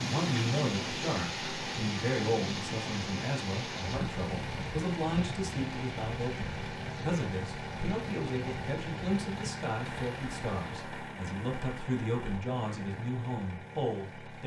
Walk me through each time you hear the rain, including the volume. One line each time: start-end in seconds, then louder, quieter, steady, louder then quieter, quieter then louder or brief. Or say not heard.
0.0-10.7 quieter.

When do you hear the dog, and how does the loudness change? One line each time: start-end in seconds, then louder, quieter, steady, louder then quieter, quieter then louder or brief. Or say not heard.
not heard.